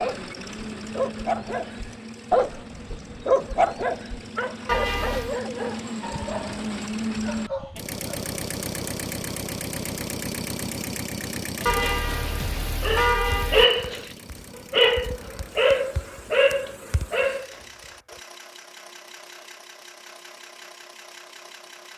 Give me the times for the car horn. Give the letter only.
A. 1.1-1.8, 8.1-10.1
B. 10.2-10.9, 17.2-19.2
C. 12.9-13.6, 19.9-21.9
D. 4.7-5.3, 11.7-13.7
D.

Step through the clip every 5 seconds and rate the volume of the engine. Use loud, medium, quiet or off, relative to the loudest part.
medium, loud, loud, quiet, quiet.